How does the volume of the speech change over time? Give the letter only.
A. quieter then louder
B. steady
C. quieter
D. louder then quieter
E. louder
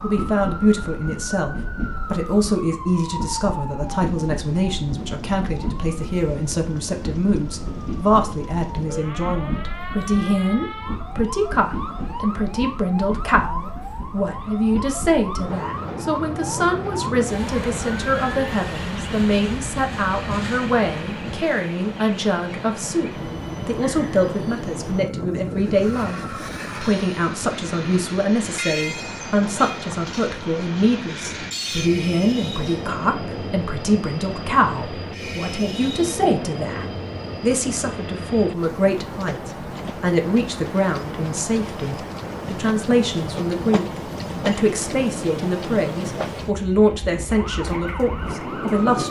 B.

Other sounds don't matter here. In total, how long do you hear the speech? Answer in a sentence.
The speech can be heard for 49 seconds in total.